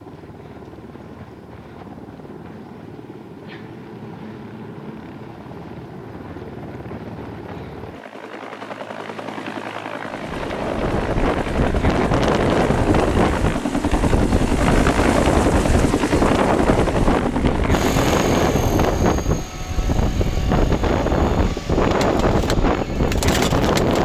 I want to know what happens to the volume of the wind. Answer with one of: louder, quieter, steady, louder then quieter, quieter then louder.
steady.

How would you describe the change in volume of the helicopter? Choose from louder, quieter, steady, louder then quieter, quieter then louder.
louder then quieter.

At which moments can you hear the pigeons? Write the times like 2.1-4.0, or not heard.
21.9-24.0.